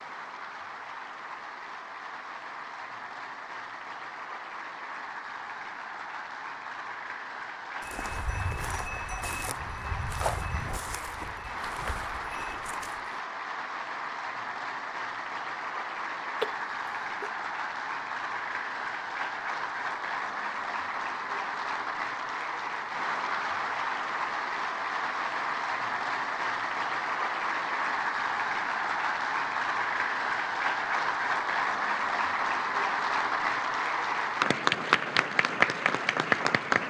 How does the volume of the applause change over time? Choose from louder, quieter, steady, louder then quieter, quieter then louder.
louder.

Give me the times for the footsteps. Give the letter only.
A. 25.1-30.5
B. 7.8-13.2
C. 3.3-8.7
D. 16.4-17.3
B.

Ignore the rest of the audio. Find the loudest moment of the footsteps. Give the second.
10 s.